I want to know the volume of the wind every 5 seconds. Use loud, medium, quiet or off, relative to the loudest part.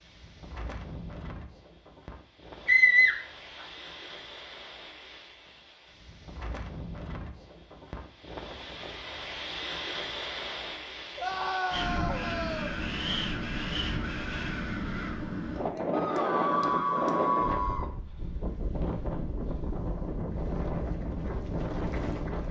quiet, medium, loud, loud, loud.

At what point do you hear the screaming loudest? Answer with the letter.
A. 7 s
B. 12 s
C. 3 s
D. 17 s
C.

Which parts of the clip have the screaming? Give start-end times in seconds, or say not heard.
2.6-3.6, 11.2-12.8, 15.9-17.9.